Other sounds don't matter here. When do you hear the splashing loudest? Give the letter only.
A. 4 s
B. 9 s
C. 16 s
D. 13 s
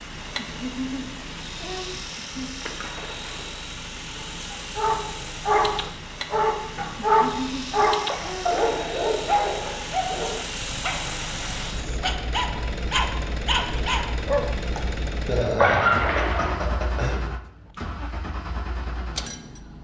C.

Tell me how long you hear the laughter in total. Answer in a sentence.
You can hear the laughter for 6 seconds altogether.